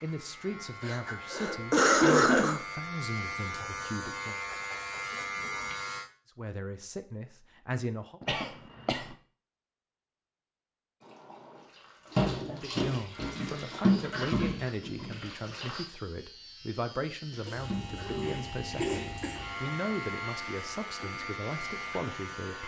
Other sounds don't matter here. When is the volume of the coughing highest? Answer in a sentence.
The volume of the coughing peaks at 2 seconds.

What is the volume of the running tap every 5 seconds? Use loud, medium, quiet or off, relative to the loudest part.
off, off, loud, medium, quiet.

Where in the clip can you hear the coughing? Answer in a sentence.
The coughing can be heard from 0.8 to 2.6 s, from 8.2 to 9.2 s and from 17.4 to 19.4 s.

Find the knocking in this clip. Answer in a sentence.
You can hear the knocking from 8.2 to 9.2 s.